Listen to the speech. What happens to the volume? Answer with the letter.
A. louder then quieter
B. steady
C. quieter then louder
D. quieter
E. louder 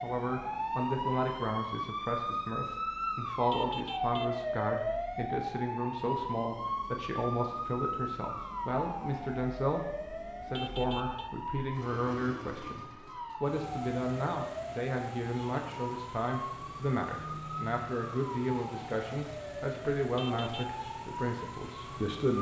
B.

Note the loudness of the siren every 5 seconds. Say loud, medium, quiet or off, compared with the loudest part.
loud, loud, medium, medium, medium.